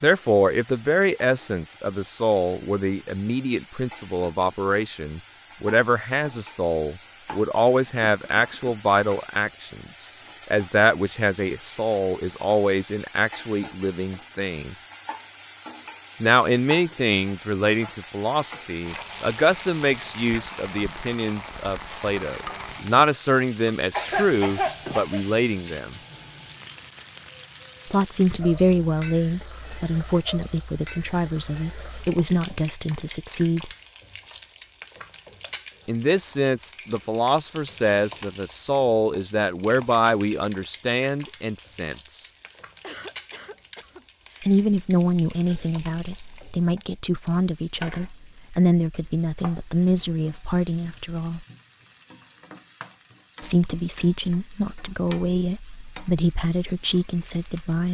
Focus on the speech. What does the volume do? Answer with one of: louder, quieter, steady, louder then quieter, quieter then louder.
steady.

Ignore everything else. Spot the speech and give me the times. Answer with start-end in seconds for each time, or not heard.
0.0-14.8, 16.2-26.0, 27.9-33.7, 35.9-42.3, 44.4-51.5, 53.4-57.9.